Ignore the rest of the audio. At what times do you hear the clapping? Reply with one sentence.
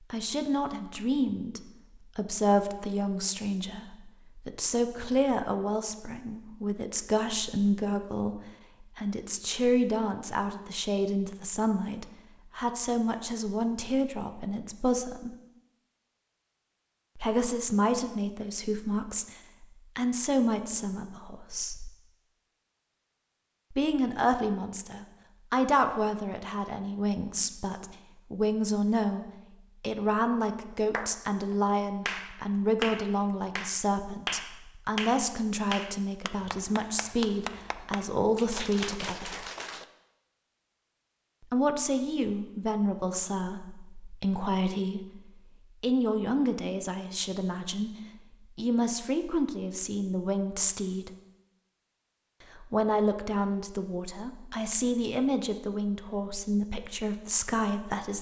The clapping can be heard from 30.7 to 39.9 s.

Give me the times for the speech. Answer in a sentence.
The speech can be heard from 0.1 to 15.3 s, from 17.1 to 21.9 s, from 23.7 to 39.5 s, from 41.5 to 47.9 s, from 48.5 to 51.1 s and from 52.5 to 58.1 s.